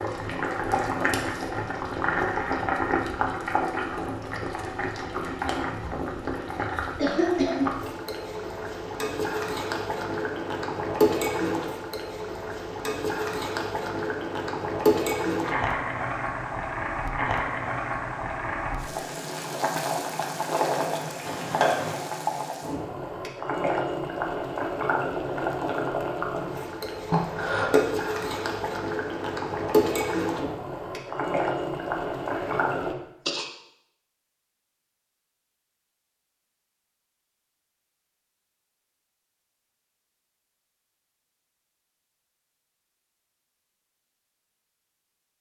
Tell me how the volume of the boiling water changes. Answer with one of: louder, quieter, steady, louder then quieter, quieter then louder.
steady.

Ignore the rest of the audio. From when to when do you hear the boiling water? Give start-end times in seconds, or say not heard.
0.0-33.0.